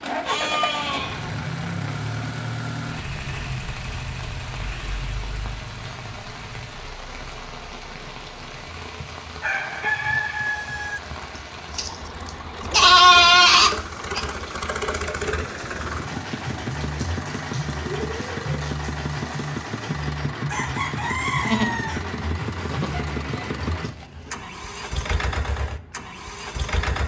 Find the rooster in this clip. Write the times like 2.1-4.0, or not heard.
9.4-11.0, 20.4-22.1.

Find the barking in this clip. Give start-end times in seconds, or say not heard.
not heard.